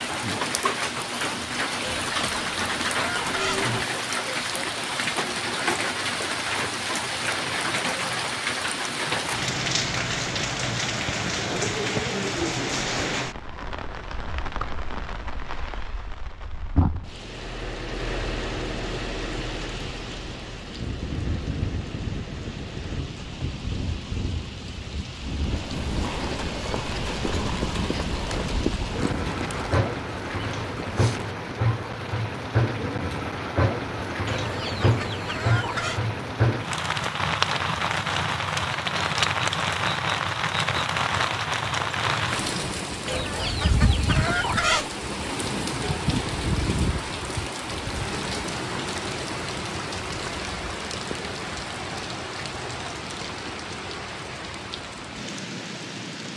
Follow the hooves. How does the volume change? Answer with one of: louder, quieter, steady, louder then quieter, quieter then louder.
quieter.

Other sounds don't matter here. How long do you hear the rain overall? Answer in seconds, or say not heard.
56 s.